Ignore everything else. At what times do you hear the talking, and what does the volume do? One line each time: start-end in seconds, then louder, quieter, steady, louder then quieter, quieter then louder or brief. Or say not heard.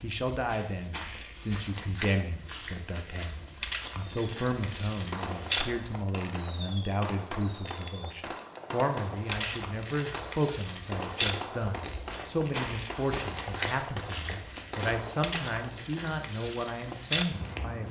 0.0-17.8 steady.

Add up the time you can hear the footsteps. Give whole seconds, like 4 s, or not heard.
15 s.